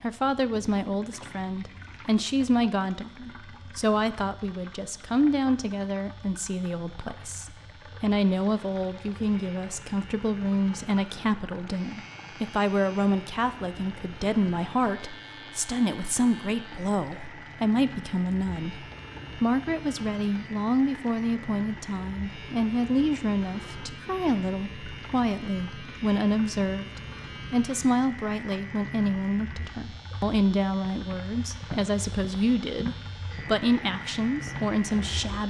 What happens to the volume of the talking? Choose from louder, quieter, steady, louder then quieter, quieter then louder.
steady.